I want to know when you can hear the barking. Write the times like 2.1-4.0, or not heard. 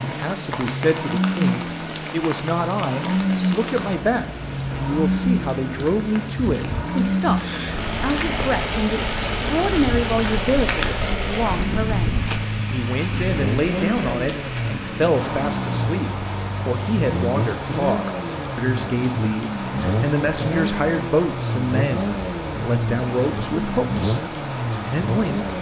not heard.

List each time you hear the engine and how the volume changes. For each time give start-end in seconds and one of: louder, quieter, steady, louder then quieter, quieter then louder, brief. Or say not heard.
0.0-25.5 steady.